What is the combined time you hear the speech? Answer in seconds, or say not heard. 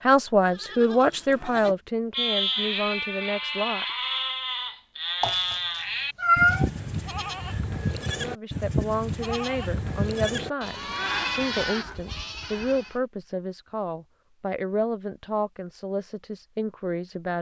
13 s.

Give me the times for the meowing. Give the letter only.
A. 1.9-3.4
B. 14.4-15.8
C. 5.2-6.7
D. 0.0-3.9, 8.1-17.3
C.